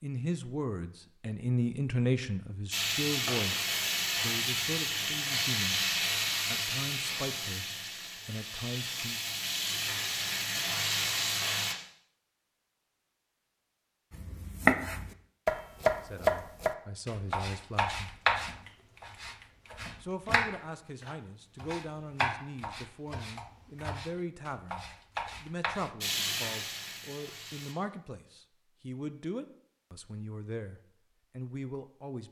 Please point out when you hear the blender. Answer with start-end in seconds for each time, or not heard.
not heard.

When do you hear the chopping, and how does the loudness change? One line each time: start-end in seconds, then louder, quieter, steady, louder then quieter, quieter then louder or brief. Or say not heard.
14.2-25.9 quieter.